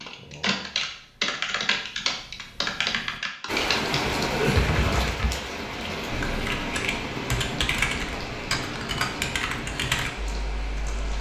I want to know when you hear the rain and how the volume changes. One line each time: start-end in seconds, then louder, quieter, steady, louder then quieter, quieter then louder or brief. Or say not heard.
3.5-11.1 quieter.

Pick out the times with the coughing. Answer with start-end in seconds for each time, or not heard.
4.3-4.8.